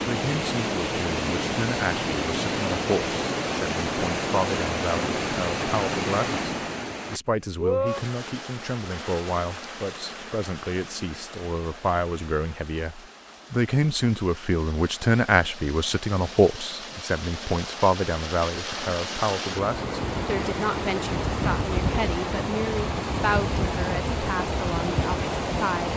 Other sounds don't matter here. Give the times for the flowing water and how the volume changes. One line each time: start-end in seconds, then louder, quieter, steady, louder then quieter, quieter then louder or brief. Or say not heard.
0.0-25.9 quieter then louder.